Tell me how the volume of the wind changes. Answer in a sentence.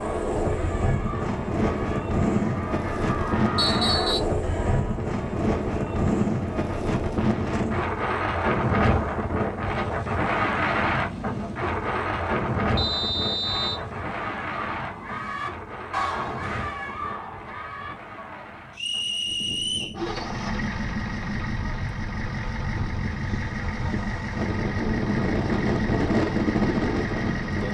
The loudness of the wind goes down, then up.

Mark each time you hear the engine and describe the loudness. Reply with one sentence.
The engine can be heard from 19.9 to 27.6 s, at a steady volume.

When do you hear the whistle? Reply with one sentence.
The whistle can be heard from 3.5 to 4.2 s, from 12.8 to 13.8 s and from 18.8 to 19.9 s.